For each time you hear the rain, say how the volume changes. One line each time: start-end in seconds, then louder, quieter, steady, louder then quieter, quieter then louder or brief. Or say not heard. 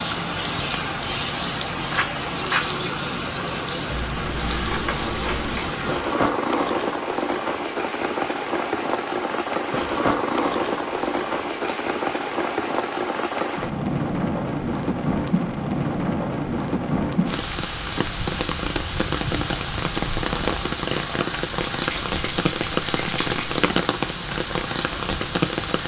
0.0-25.8 steady.